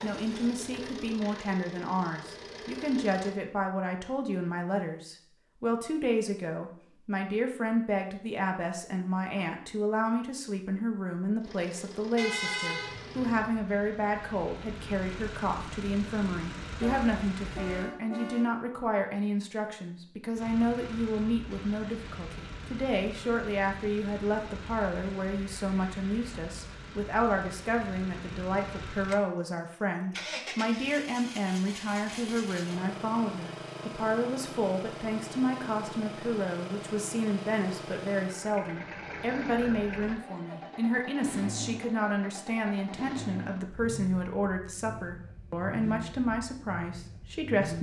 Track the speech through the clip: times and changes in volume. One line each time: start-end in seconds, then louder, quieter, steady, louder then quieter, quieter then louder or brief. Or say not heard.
0.0-47.7 steady.